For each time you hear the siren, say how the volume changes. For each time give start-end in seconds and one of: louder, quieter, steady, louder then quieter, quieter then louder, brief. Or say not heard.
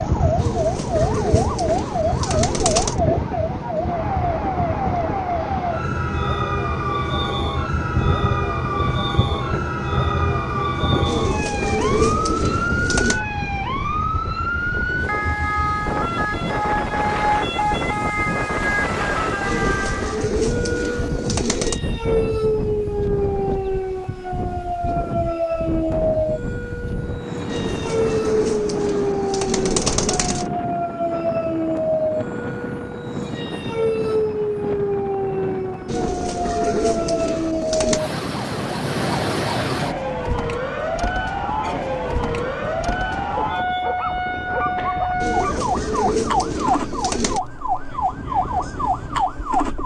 0.0-49.8 steady.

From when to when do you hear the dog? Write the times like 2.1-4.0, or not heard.
43.4-45.7.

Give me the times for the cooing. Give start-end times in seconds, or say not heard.
0.3-3.0, 11.1-13.2, 19.4-21.8, 27.4-30.5, 35.9-38.0, 45.2-47.4.